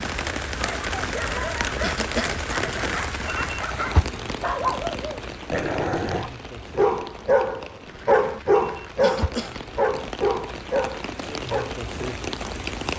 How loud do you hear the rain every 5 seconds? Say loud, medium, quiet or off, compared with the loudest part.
loud, medium, loud.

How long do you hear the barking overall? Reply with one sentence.
You can hear the barking for 11 seconds altogether.